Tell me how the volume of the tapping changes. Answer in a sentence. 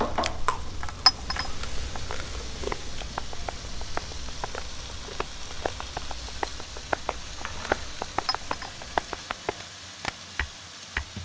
The volume of the tapping goes up.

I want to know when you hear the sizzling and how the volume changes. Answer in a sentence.
You can hear the sizzling from 0.0 to 11.2 s, at a steady volume.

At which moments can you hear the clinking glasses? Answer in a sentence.
You can hear the clinking glasses from 1.1 to 1.5 s and from 8.2 to 8.7 s.